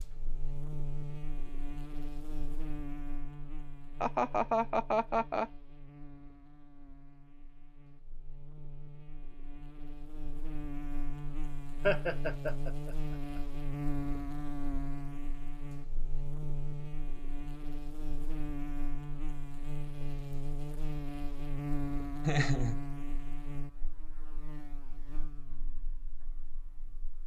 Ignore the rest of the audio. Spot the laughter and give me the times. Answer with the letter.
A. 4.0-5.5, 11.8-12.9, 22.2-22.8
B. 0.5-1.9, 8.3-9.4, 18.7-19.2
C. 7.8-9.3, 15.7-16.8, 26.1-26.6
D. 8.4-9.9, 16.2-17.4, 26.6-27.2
A.